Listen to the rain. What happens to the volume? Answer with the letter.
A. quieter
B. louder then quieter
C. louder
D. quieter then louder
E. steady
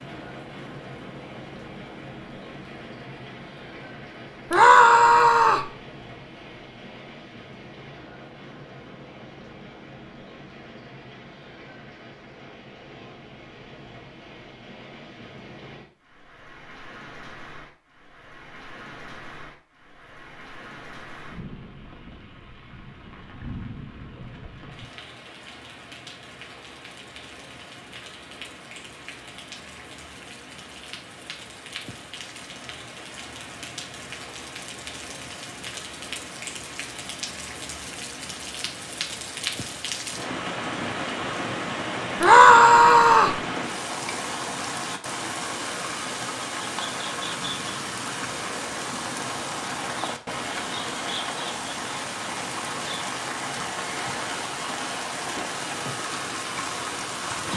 C.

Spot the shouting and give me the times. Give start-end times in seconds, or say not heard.
4.5-5.7, 42.2-43.4.